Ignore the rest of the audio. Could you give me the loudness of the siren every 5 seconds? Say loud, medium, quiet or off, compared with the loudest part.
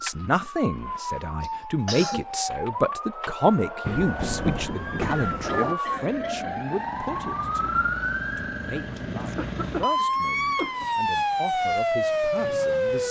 medium, medium, loud.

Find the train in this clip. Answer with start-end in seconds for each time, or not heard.
3.9-5.8.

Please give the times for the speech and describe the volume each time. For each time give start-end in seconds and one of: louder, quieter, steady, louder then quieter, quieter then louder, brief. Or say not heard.
0.0-13.0 quieter.